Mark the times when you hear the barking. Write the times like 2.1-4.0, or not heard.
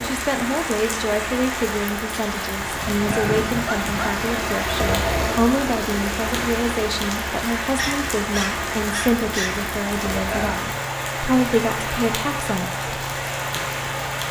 2.6-4.2, 7.8-9.7.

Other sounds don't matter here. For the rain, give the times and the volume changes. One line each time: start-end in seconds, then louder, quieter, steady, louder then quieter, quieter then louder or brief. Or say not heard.
0.0-14.2 steady.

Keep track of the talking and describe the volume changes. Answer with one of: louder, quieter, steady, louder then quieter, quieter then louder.
steady.